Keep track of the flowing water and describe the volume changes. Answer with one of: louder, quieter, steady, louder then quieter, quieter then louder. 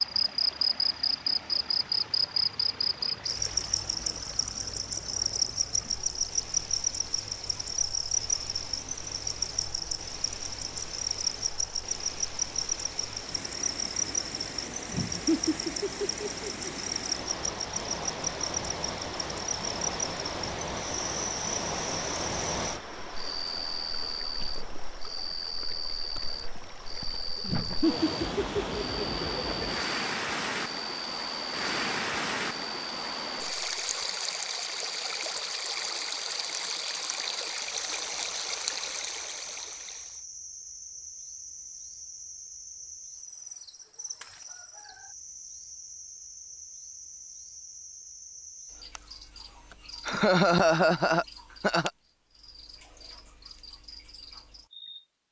louder.